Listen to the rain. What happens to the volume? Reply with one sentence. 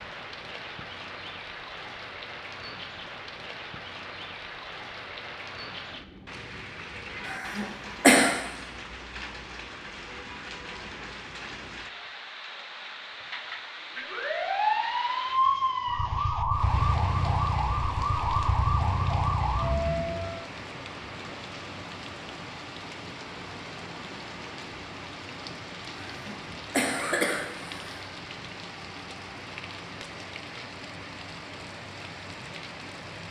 The volume of the rain stays about the same.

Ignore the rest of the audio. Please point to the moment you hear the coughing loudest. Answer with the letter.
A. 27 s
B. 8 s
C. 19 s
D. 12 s
B.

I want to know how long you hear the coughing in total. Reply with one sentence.
You can hear the coughing for 3 seconds altogether.